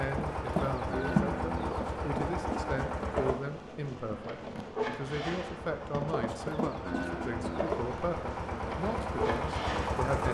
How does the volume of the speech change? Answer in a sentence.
The loudness of the speech stays about the same.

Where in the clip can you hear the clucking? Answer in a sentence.
The clucking can be heard from 0.7 to 1.8 s and from 6.4 to 7.8 s.